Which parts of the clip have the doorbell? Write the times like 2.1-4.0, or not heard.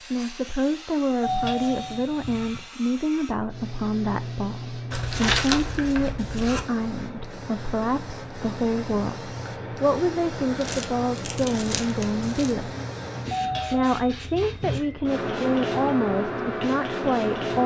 1.2-2.6, 13.3-14.8.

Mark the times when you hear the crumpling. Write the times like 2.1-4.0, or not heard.
4.9-6.6, 10.6-12.6.